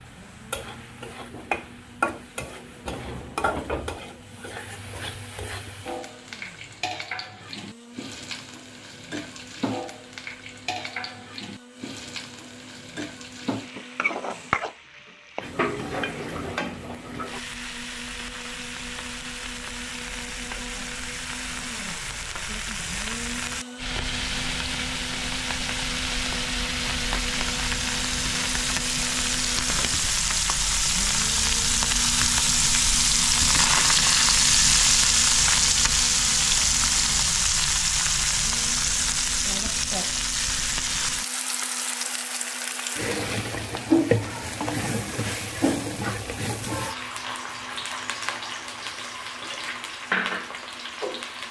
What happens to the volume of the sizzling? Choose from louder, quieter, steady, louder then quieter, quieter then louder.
louder then quieter.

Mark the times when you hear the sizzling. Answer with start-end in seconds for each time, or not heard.
0.0-51.4.